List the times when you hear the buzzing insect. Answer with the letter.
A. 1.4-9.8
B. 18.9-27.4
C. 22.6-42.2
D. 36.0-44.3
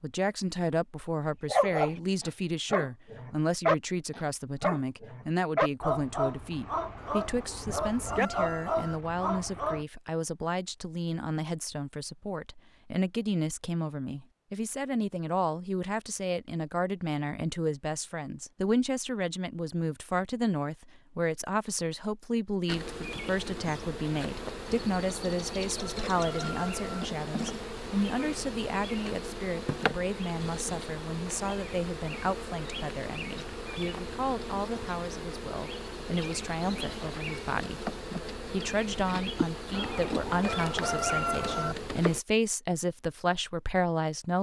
C.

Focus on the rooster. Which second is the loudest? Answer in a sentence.
The volume of the rooster peaks at 41 seconds.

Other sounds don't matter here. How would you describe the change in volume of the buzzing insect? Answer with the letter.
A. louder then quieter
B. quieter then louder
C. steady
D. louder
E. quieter
C.